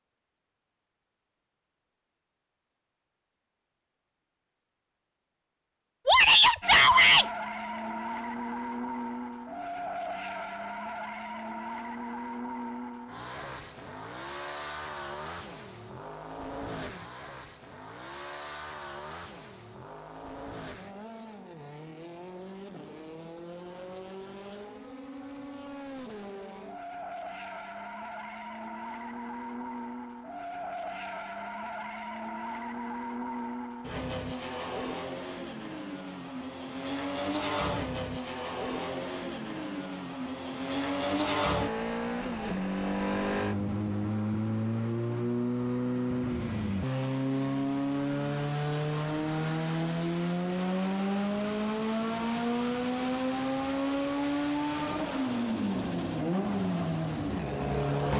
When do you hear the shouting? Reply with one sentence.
The shouting can be heard from 6.0 to 7.2 s.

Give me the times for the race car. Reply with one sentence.
The race car can be heard from 6.6 to 58.1 s.